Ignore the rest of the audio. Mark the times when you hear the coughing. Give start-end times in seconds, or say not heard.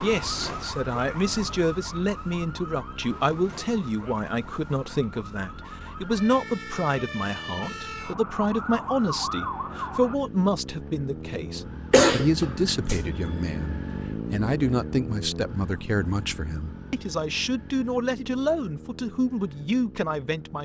11.9-13.0.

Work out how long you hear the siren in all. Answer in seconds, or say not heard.
10 s.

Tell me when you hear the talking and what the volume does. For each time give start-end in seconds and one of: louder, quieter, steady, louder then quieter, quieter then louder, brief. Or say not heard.
0.0-20.6 steady.